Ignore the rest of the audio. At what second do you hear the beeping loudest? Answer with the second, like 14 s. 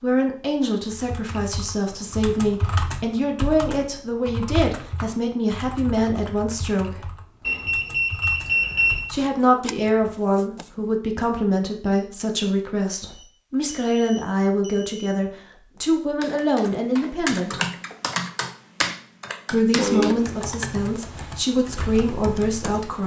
9 s.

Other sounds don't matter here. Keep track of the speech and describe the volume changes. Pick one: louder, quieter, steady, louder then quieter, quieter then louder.
steady.